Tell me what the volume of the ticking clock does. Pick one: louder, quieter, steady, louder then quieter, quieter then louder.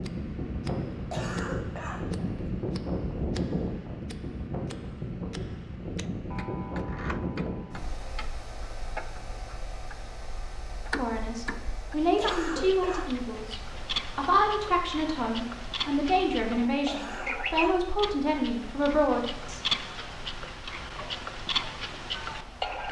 louder.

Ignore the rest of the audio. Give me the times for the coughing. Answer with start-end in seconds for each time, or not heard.
0.9-2.2, 12.0-13.3, 16.7-17.9.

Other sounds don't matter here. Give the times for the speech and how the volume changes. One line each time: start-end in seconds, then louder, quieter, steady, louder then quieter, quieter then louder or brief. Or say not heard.
10.9-19.6 steady.